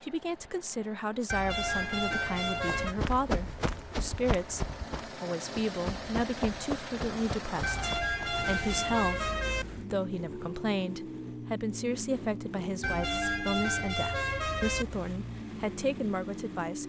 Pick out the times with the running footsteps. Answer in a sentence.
The running footsteps can be heard from 2.5 to 8.4 s.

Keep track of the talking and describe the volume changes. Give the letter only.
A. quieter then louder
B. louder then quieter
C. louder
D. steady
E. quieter
D.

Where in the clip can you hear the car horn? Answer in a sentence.
You can hear the car horn from 1.2 to 3.0 s, from 7.6 to 9.7 s and from 12.8 to 14.8 s.